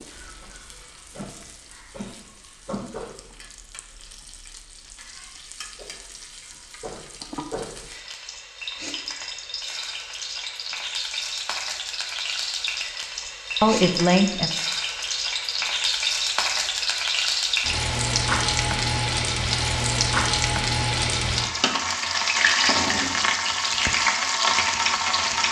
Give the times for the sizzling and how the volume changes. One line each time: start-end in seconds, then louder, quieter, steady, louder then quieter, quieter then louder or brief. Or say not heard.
0.0-25.4 louder.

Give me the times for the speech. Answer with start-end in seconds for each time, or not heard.
13.6-14.5.